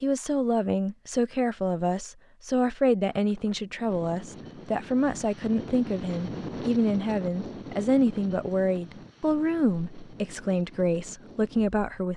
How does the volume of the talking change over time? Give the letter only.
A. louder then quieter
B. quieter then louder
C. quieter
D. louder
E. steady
E.